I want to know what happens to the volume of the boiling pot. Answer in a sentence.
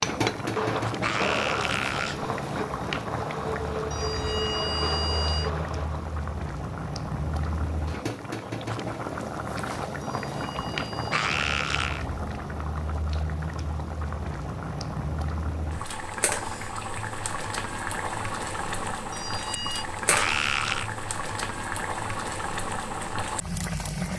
The volume of the boiling pot stays about the same.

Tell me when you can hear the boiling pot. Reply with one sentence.
You can hear the boiling pot from 0.0 to 24.1 s.